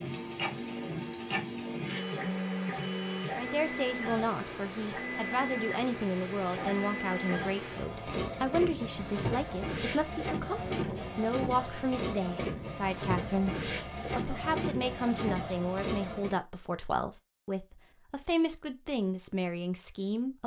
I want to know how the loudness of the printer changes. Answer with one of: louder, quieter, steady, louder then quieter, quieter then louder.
steady.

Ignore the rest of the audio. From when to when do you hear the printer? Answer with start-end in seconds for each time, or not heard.
0.0-16.4.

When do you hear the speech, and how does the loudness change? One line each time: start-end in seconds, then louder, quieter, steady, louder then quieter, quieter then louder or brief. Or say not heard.
3.4-20.4 steady.